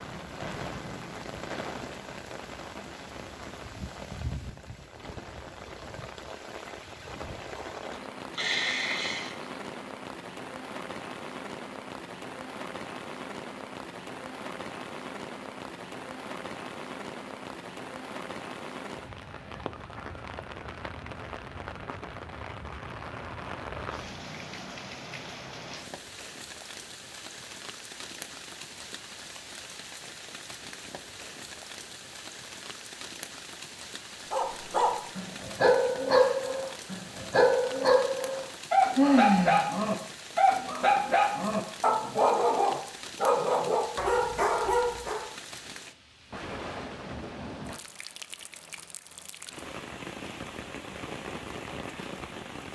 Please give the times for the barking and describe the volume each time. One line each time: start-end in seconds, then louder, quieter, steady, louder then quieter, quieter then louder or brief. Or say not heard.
34.3-45.2 steady.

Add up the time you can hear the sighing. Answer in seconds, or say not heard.
2 s.